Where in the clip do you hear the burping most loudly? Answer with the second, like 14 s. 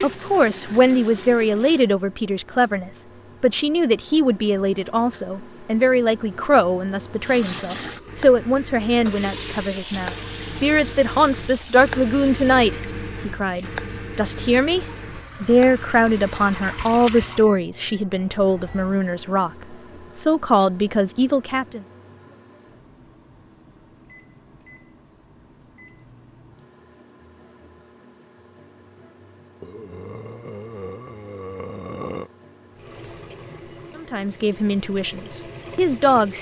32 s.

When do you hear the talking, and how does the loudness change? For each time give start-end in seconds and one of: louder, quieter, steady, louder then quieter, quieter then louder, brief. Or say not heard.
0.0-21.9 steady
34.0-36.3 brief.